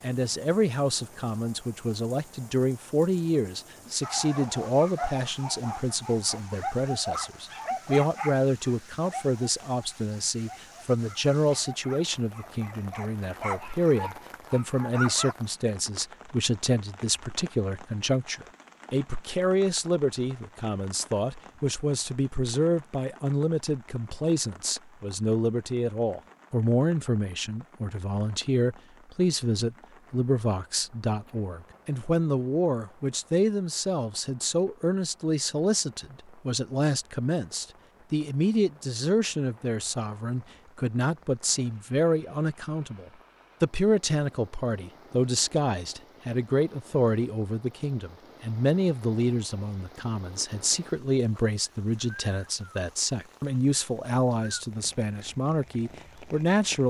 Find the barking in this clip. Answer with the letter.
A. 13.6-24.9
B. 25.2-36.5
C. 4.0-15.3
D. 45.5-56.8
C.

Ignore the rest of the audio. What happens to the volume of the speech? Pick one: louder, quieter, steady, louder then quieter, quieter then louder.
steady.